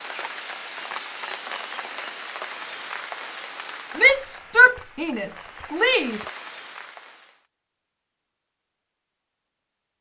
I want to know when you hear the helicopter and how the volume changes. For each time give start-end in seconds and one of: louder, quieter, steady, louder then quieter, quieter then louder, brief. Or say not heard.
not heard.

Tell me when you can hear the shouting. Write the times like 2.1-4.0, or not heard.
4.0-6.2.